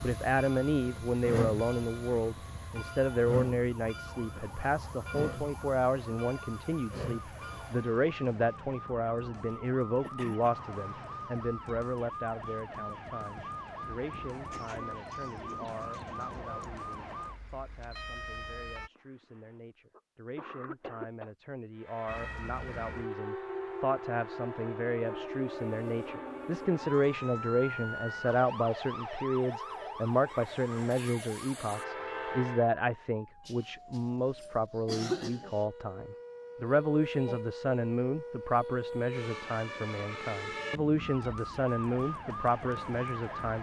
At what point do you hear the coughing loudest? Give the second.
35 s.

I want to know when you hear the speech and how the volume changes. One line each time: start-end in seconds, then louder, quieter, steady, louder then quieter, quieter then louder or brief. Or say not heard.
0.0-43.5 quieter then louder.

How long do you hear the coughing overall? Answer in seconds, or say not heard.
4 s.